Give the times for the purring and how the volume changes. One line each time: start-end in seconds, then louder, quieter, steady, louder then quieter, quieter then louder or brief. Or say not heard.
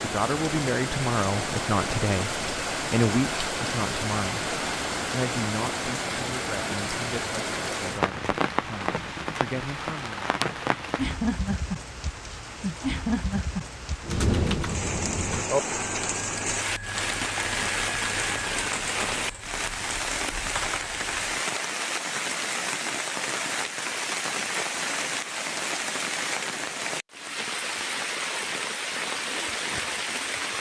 not heard.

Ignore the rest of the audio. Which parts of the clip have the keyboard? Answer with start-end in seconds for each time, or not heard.
14.0-21.4.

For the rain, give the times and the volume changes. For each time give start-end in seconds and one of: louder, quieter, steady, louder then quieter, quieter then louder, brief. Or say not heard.
0.0-30.5 steady.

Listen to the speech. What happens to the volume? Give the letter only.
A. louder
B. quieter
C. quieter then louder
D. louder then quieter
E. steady
B.